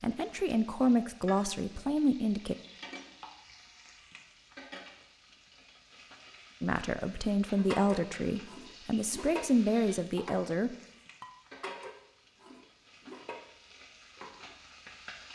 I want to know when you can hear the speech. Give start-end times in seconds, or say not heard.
0.0-2.5, 6.6-10.8.